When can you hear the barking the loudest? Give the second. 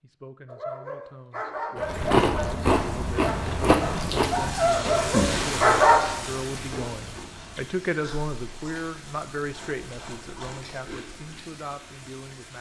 6 s.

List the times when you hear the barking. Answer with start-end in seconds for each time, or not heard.
0.5-6.0.